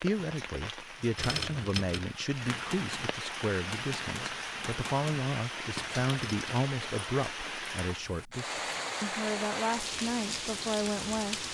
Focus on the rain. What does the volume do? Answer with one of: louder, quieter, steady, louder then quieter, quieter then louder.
louder.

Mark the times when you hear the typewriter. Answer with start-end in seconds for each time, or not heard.
1.1-6.6.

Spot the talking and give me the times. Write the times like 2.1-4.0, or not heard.
0.0-11.4.